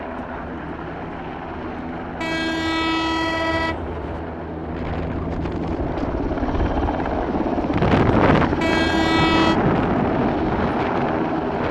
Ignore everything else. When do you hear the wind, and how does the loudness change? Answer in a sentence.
You can hear the wind from 4.6 to 11.6 s, getting louder then quieter.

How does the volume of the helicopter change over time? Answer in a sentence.
The volume of the helicopter goes up.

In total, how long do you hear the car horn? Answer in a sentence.
The car horn can be heard for 3 seconds in total.